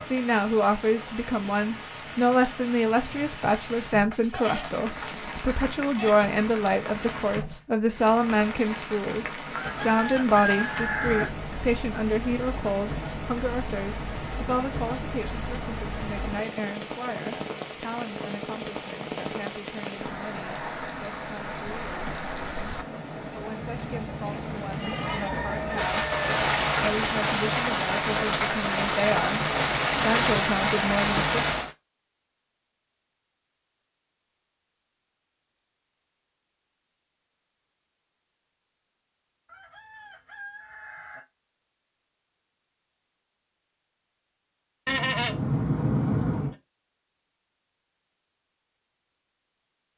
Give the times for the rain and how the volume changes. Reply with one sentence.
You can hear the rain from 0.0 to 31.8 s, getting louder.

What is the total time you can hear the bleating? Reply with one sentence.
The bleating can be heard for 6 seconds in total.